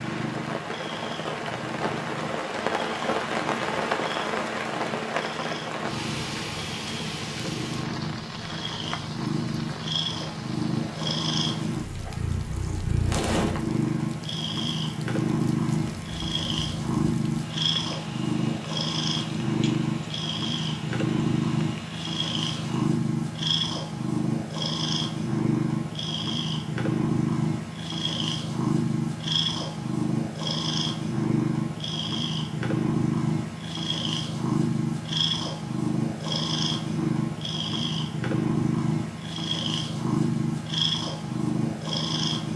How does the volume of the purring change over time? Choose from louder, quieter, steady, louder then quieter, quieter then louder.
louder.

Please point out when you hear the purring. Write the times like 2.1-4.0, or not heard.
0.0-42.5.